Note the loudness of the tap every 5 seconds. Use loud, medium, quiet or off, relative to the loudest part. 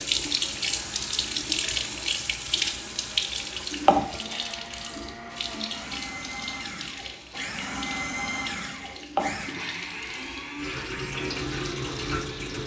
loud, medium, medium.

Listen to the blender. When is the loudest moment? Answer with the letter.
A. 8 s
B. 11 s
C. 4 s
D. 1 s
A.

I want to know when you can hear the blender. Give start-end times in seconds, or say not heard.
0.1-12.6.